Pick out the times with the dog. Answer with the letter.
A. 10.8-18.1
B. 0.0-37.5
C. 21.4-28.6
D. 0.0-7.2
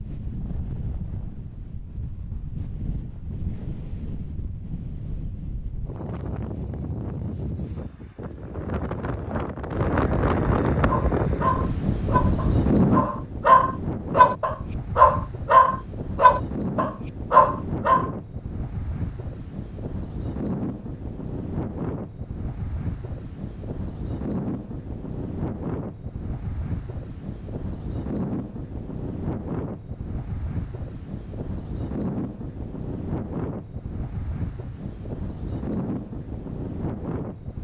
A.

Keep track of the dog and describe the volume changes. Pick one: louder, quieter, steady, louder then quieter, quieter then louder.
louder.